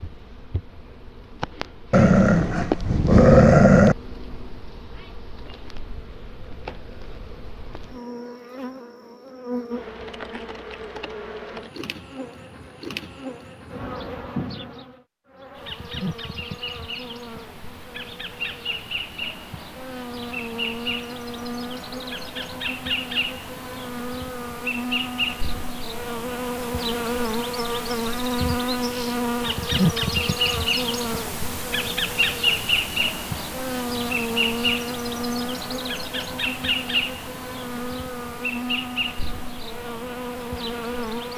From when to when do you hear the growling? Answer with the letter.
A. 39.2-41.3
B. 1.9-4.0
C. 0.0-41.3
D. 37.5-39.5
B.